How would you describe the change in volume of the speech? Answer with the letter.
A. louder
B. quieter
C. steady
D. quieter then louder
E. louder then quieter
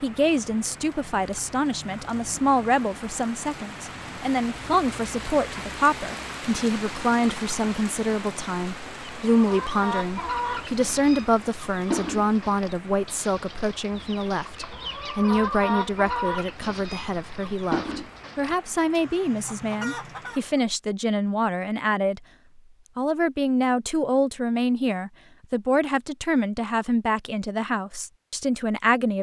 C.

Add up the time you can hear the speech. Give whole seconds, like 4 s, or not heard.
28 s.